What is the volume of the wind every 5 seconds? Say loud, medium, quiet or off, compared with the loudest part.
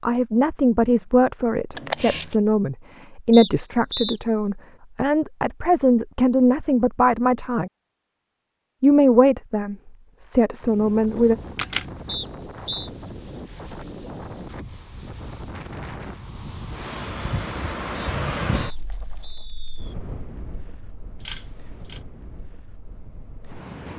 off, off, medium, loud, medium.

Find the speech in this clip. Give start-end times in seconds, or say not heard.
0.0-7.7, 8.8-11.3.